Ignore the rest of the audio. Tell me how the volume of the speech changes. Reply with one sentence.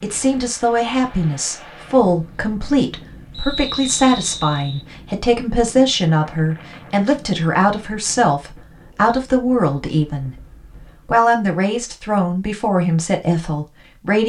The loudness of the speech stays about the same.